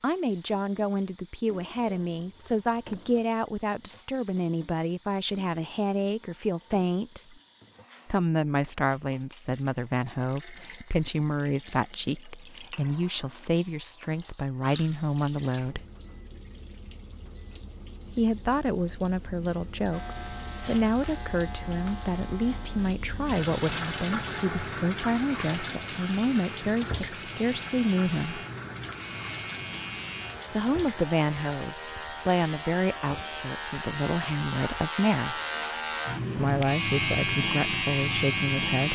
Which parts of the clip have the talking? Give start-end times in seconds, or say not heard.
0.0-7.3, 8.1-15.8, 18.1-28.4, 30.5-35.4, 36.4-38.9.